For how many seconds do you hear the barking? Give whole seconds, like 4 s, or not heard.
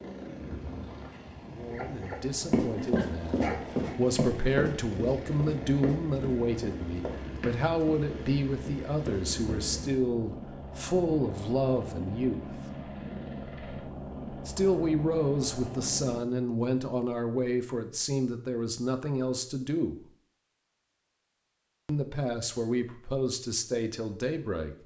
3 s.